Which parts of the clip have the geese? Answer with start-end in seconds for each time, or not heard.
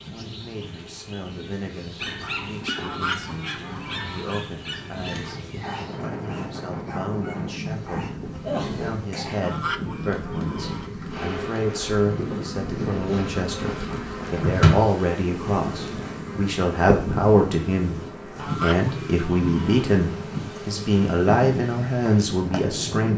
2.8-4.2, 9.4-10.9, 18.4-19.9.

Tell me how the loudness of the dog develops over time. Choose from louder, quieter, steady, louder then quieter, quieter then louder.
quieter.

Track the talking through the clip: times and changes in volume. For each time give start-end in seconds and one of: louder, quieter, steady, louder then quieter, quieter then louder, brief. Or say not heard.
0.0-23.1 louder.